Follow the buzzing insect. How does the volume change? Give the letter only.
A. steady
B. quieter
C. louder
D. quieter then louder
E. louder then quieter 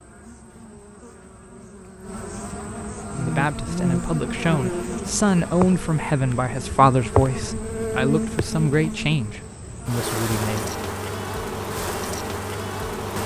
C.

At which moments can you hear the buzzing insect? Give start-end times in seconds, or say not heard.
0.0-13.2.